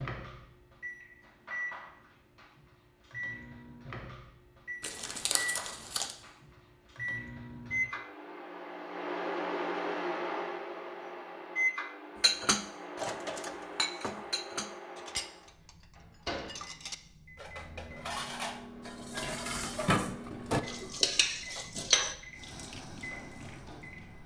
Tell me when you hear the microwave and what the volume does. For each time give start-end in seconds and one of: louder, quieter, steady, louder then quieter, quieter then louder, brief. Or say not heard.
0.0-24.2 louder then quieter.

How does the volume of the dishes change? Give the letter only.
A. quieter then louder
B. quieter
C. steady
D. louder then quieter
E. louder
A.